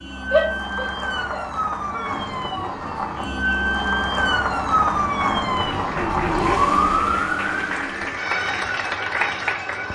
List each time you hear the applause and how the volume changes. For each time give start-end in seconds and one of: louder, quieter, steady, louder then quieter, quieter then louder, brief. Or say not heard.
5.5-9.9 louder.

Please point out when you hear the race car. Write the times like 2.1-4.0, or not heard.
1.9-8.2.